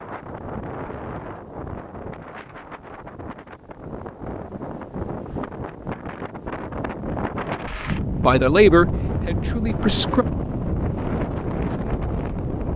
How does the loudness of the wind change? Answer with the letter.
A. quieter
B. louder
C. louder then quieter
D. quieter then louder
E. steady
B.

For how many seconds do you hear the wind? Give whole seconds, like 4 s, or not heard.
13 s.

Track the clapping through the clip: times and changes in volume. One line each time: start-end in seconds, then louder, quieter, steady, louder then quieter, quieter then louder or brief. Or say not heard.
not heard.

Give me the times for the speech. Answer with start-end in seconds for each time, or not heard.
8.2-10.2.